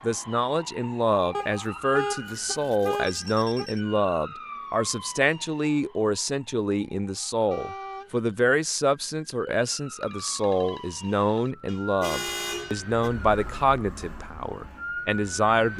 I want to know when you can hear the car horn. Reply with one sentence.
The car horn can be heard from 1.3 to 3.7 s, from 7.5 to 8.2 s and from 11.7 to 13.1 s.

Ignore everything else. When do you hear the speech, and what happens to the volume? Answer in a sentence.
The speech can be heard from 0.0 to 15.7 s, at a steady volume.